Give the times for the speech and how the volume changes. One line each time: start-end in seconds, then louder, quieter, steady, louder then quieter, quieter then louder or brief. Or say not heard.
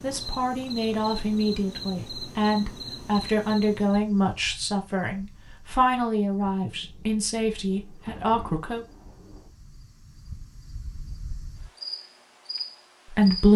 0.0-8.8 steady
13.1-13.5 brief.